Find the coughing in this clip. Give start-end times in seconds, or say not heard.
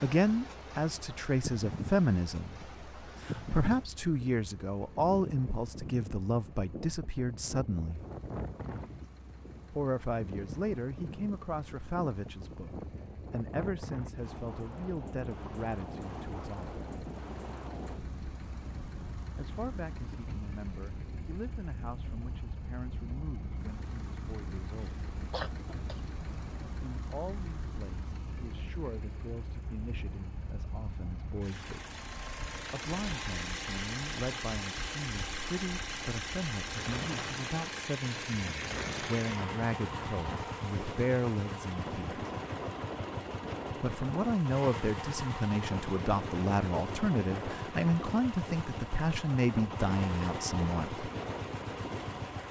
24.8-26.1.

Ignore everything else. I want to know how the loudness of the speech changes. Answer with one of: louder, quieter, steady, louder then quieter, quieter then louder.
quieter then louder.